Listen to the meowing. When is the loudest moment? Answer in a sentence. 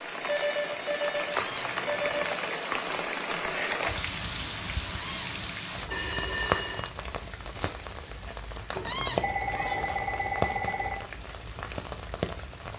The volume of the meowing peaks at 9 seconds.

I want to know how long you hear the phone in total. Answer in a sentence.
The phone can be heard for 5 seconds in total.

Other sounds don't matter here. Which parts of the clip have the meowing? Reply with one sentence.
You can hear the meowing from 1.4 to 2.4 s, from 5.0 to 6.0 s and from 8.8 to 9.9 s.